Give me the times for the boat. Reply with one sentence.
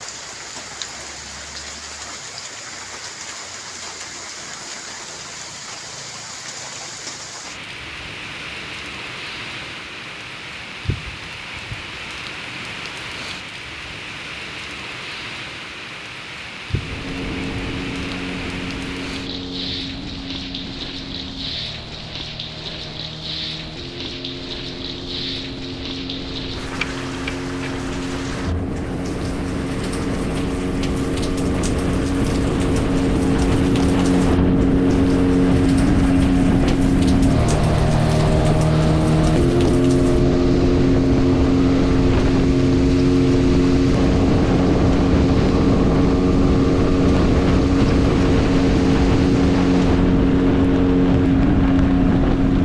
You can hear the boat from 16.7 to 52.6 s.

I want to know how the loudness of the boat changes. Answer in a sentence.
The volume of the boat goes up.